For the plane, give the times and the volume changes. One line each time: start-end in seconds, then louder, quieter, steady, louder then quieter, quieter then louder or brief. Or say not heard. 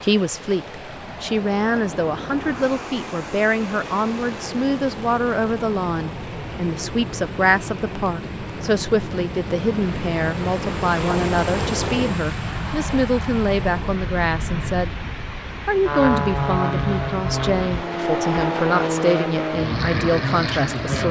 0.1-21.0 louder.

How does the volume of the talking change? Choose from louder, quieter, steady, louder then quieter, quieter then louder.
steady.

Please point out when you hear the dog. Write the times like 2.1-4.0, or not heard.
not heard.